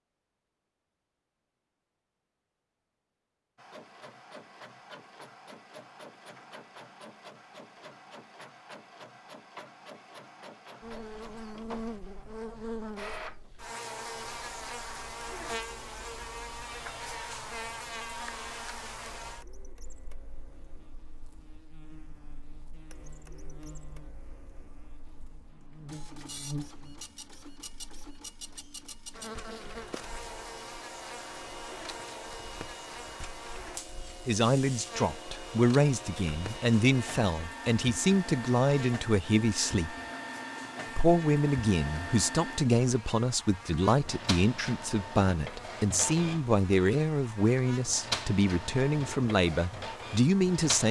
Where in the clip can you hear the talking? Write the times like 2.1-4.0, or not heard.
34.2-40.0, 41.0-50.8.